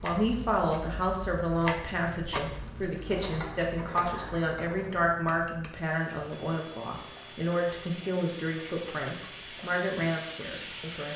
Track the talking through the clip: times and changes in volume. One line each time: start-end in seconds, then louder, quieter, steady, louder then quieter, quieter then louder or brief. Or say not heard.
0.0-11.1 steady.